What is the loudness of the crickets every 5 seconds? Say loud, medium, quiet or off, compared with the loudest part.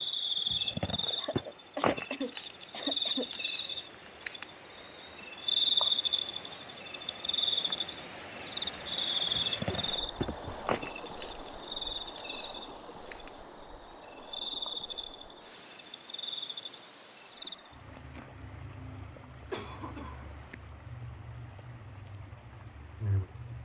loud, loud, medium, quiet, quiet.